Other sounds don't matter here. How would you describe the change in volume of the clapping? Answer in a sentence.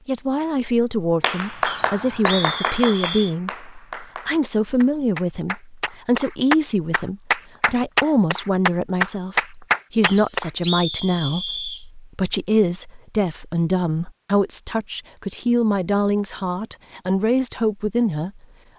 The loudness of the clapping goes down, then up.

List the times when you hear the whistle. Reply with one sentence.
The whistle can be heard from 1.6 to 3.4 s and from 10.0 to 11.8 s.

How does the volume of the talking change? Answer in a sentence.
The loudness of the talking stays about the same.